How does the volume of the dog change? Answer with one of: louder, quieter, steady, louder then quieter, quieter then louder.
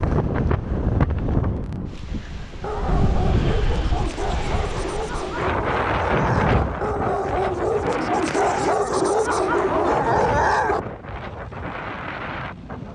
louder.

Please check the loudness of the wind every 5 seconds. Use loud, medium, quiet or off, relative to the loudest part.
loud, loud, medium.